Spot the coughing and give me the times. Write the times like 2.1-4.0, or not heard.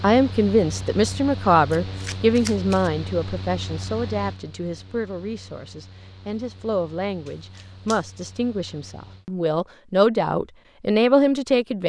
not heard.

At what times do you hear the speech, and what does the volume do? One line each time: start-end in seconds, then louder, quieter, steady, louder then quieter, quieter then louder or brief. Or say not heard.
0.0-11.8 quieter then louder.